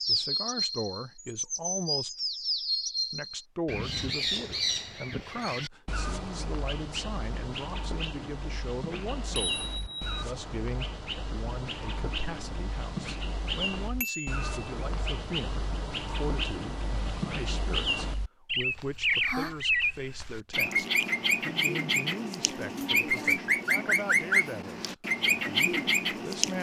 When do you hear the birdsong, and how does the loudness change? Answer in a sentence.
The birdsong can be heard from 0.0 to 26.5 s, getting quieter then louder.